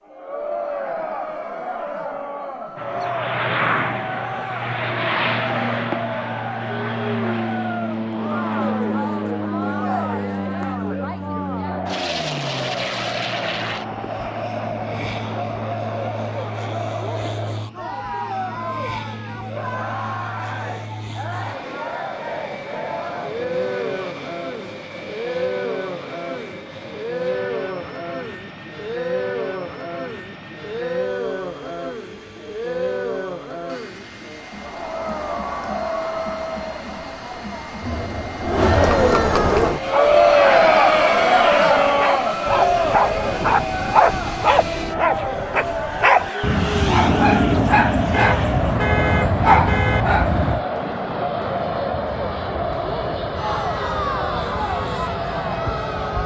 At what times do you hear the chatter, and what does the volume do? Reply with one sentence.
You can hear the chatter from 0.0 to 56.2 s, getting louder then quieter.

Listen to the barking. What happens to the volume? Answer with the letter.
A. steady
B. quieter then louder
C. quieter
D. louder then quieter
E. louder
E.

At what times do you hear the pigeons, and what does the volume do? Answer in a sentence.
The pigeons can't be heard in this clip.